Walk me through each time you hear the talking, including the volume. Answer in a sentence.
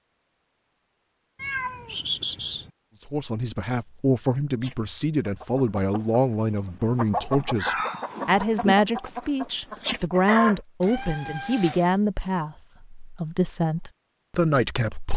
The talking can be heard from 3.0 to 15.1 s, at a steady volume.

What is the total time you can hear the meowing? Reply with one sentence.
You can hear the meowing for 3 seconds altogether.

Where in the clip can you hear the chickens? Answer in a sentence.
The chickens can be heard from 4.6 to 10.6 s.